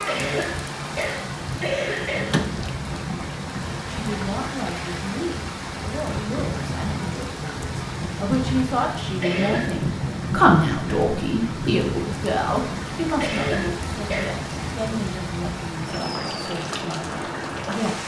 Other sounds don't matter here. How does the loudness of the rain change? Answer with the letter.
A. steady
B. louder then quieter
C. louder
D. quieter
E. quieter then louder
A.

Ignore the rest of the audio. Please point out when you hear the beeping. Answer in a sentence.
You can't hear the beeping here.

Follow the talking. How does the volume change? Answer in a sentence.
The loudness of the talking goes up, then down.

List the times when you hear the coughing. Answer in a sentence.
The coughing can be heard from 0.1 to 2.5 s, from 9.2 to 9.8 s and from 13.2 to 14.3 s.